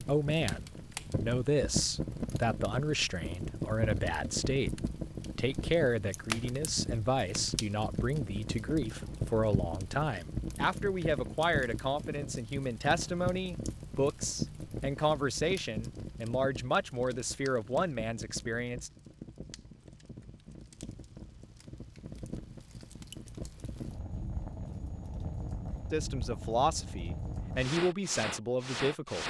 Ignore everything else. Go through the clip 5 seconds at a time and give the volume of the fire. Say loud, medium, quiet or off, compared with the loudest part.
loud, loud, loud, medium, medium, loud.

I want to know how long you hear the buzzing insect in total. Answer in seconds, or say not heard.
not heard.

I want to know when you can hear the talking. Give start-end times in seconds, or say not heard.
0.0-18.9, 25.9-29.2.